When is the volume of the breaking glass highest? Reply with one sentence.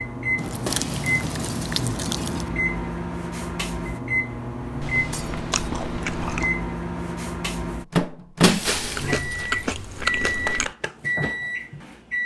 The loudest moment of the breaking glass is at 9 seconds.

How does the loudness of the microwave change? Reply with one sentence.
The loudness of the microwave stays about the same.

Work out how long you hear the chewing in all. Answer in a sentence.
The chewing can be heard for 6 seconds in total.